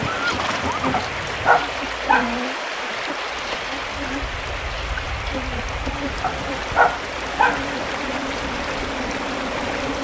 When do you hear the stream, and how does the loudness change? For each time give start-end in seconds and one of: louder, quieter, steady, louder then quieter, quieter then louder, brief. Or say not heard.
0.0-10.0 steady.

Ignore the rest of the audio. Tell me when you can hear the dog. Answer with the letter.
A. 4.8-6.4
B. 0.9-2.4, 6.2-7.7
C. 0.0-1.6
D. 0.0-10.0
B.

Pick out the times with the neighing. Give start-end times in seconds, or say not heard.
0.0-1.6.